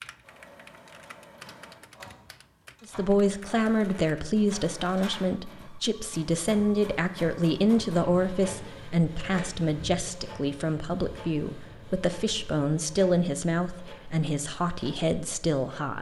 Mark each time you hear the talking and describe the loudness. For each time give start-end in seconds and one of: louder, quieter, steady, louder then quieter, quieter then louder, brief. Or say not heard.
2.9-15.9 steady.